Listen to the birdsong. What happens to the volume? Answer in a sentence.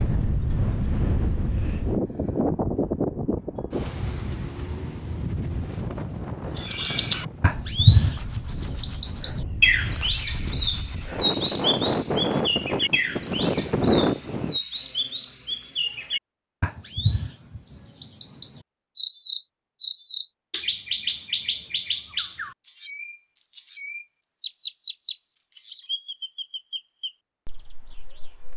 The loudness of the birdsong goes down.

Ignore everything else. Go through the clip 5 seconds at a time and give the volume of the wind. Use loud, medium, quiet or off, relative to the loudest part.
loud, medium, loud, off, off, off.